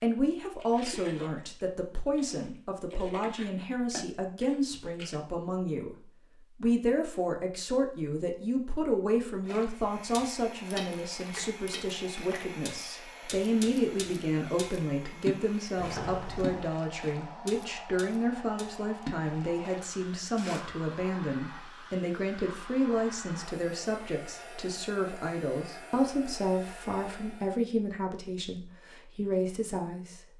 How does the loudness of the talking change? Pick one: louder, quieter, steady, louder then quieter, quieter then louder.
steady.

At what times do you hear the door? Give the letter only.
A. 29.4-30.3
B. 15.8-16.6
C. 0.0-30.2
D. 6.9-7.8
B.